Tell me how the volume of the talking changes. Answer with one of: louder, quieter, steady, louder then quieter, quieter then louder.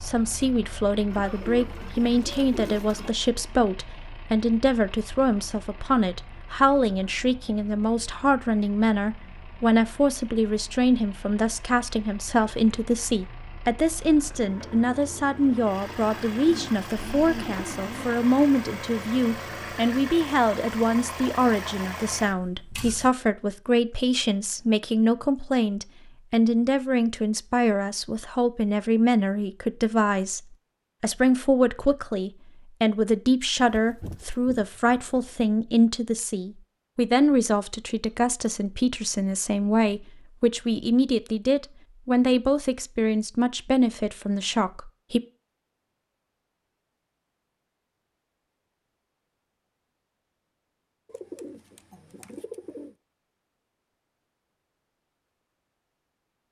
steady.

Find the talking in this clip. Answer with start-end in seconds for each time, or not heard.
0.0-30.4, 31.0-45.2.